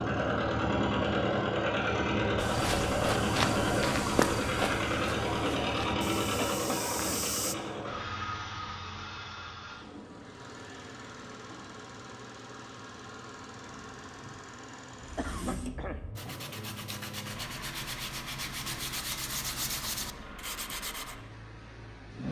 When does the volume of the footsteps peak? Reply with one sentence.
The volume of the footsteps peaks at 4 seconds.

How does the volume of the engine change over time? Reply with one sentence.
The loudness of the engine goes down.